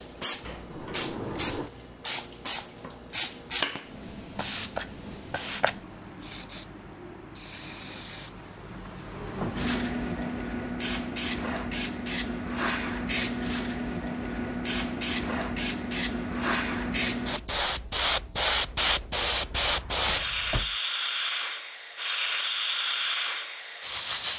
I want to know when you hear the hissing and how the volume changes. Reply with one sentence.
You can hear the hissing from 0.0 to 24.3 s, getting louder.